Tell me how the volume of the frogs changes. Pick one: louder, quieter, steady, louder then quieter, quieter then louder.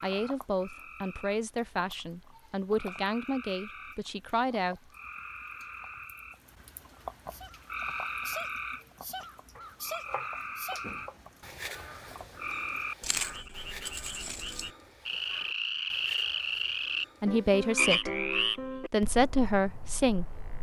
louder.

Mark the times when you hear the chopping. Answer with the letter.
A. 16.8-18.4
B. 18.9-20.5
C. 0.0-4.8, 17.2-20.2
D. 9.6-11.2
D.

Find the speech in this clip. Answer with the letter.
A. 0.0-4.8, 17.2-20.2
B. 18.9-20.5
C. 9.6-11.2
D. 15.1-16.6
A.